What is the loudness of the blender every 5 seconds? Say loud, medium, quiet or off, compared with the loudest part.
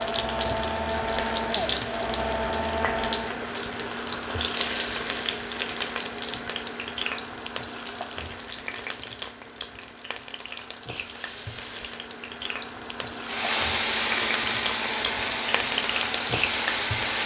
loud, off, loud, loud.